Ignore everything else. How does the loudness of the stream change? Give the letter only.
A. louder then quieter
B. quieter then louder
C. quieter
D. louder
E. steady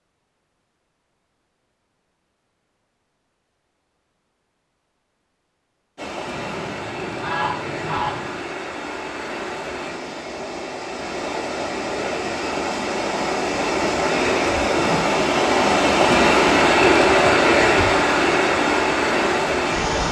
D.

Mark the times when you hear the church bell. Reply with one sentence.
You can't hear the church bell here.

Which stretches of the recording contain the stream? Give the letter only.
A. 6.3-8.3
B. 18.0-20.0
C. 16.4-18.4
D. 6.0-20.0
D.